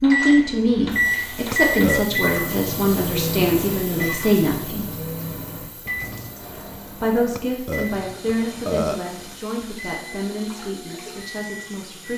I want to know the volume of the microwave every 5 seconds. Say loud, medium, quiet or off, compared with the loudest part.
loud, medium, quiet.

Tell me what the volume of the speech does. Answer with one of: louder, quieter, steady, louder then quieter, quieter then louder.
quieter.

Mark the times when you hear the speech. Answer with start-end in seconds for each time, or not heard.
0.0-4.9, 7.0-12.1.